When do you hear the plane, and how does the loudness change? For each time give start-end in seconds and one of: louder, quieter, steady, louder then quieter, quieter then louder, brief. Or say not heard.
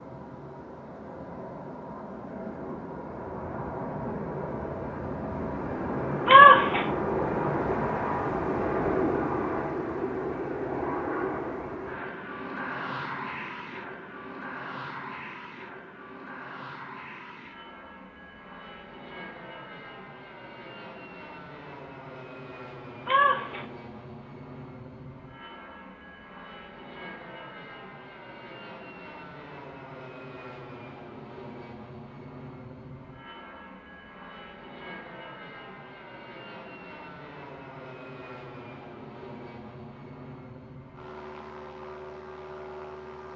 0.0-43.3 quieter.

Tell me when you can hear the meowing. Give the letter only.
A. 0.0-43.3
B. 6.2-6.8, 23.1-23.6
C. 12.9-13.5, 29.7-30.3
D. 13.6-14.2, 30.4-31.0
B.